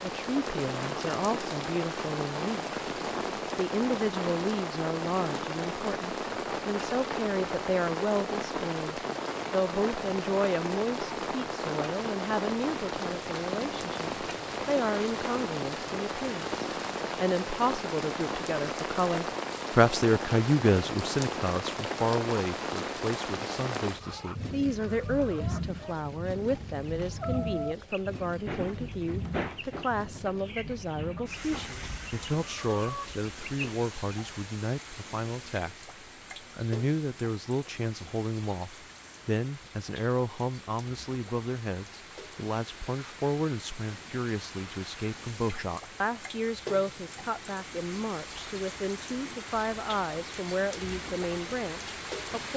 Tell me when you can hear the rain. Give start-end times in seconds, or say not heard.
0.0-52.5.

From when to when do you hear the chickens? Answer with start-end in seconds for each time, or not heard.
23.8-33.9.